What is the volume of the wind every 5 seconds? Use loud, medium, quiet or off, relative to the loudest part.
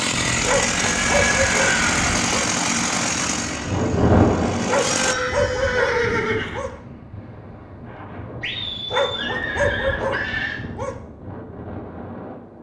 loud, quiet, quiet.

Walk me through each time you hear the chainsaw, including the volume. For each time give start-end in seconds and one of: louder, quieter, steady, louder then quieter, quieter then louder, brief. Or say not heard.
0.0-5.2 quieter.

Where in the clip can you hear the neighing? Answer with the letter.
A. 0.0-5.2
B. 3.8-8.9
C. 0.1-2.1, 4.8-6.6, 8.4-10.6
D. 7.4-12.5
C.